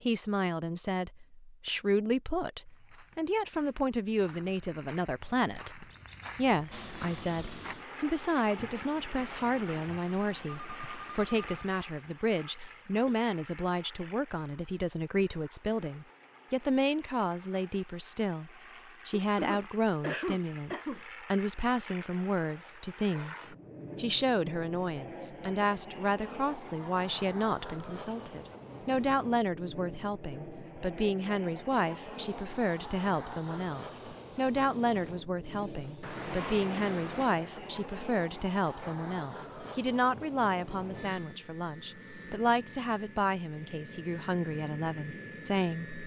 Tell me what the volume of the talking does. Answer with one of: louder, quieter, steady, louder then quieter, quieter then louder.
steady.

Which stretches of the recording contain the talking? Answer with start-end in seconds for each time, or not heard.
0.0-46.0.